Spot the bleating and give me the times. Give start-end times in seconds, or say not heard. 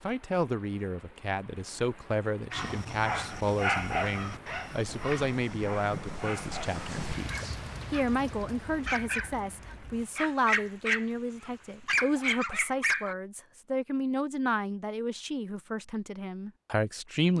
not heard.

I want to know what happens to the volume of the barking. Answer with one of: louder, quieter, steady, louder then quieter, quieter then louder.
quieter then louder.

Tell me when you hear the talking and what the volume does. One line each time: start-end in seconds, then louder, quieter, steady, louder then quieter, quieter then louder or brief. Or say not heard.
0.0-17.3 steady.